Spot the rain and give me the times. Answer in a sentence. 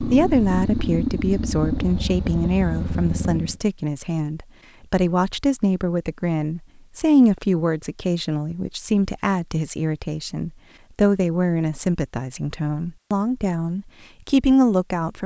You can't hear the rain here.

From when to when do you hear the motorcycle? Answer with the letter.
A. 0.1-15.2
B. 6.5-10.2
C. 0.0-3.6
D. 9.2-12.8
C.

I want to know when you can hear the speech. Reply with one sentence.
You can hear the speech from 0.1 to 15.2 s.